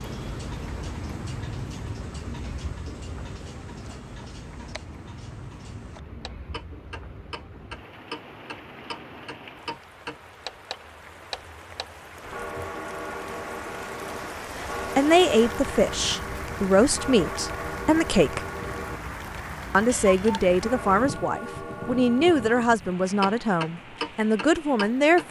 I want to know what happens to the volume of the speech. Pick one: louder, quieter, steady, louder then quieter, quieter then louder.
steady.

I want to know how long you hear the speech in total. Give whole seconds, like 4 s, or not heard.
9 s.